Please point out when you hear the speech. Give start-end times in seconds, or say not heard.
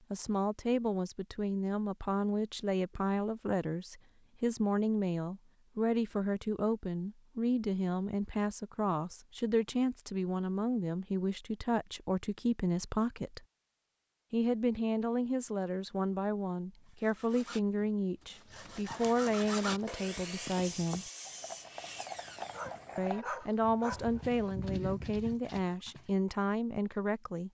0.1-13.4, 14.3-21.1, 22.9-27.4.